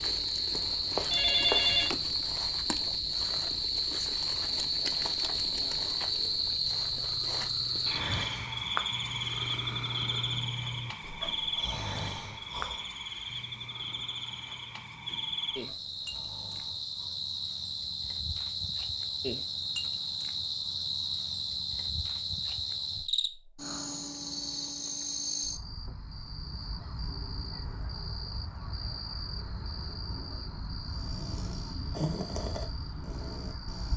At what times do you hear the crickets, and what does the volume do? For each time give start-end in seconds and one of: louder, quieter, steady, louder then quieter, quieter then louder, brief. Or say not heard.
0.0-33.9 quieter.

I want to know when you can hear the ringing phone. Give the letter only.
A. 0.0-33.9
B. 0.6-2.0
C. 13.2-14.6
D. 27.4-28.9
B.